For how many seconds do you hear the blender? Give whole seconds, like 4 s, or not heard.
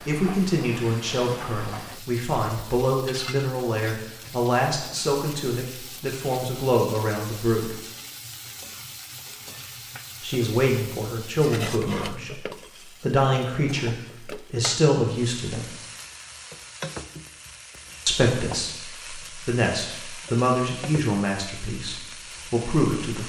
not heard.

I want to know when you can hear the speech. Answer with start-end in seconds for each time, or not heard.
0.1-7.8, 10.2-12.4, 13.0-15.7, 18.1-23.2.